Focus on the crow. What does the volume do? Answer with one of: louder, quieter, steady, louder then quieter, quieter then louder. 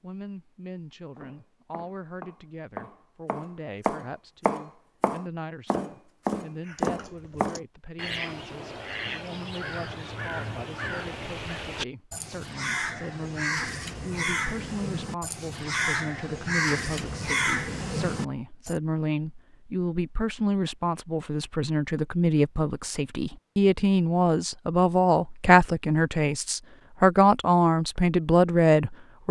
louder.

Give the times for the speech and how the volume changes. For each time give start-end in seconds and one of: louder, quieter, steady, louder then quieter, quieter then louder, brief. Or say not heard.
0.0-29.2 louder.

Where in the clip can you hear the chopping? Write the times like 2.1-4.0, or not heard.
1.1-7.6.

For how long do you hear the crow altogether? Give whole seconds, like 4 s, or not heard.
12 s.